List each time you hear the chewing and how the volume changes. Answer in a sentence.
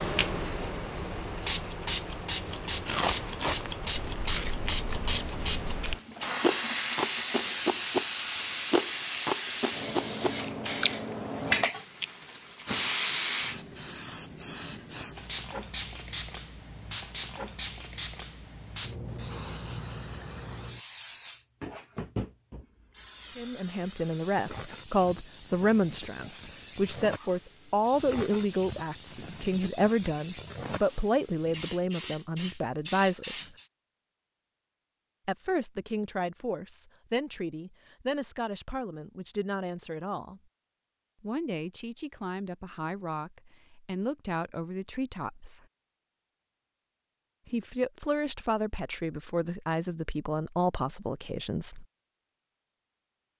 You can hear the chewing from 2.5 to 12.1 s, getting quieter then louder.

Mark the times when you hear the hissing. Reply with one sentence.
The hissing can be heard from 0.0 to 33.6 s.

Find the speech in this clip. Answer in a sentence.
The speech can be heard from 23.4 to 33.5 s, from 35.2 to 40.4 s, from 41.2 to 45.6 s and from 47.5 to 51.9 s.